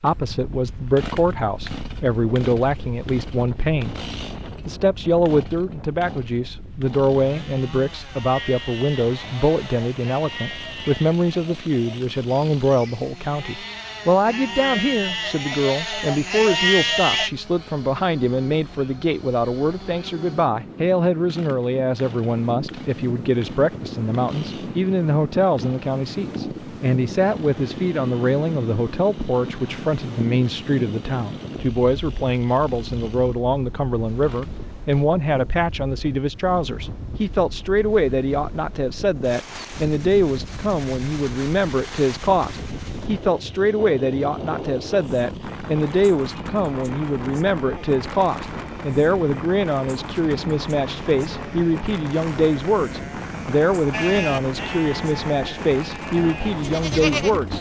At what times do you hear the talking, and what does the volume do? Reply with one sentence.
The talking can be heard from 0.0 to 4.0 s, at a steady volume; and from 4.7 to 57.5 s, at a steady volume.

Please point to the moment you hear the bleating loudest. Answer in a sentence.
The loudest moment of the bleating is at 17 seconds.